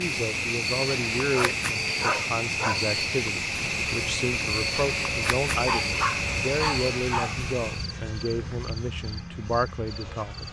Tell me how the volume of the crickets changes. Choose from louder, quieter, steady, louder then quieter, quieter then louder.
quieter.